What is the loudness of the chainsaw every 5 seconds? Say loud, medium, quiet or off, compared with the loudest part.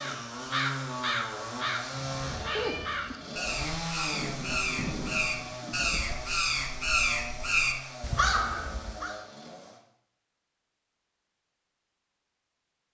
loud, medium, off.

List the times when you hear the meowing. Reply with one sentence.
The meowing can be heard from 2.2 to 3.1 s.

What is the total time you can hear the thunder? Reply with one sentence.
You can hear the thunder for 2 seconds altogether.